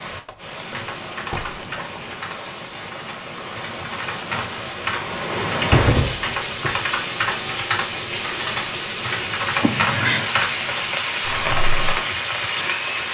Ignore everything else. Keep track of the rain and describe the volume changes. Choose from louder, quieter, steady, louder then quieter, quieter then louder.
louder.